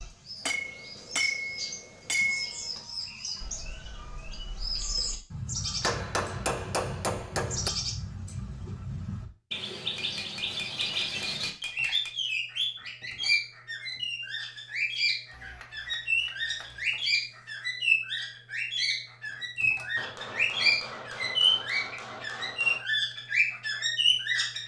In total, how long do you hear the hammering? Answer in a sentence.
You can hear the hammering for 11 seconds altogether.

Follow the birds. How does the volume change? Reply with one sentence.
The loudness of the birds goes up.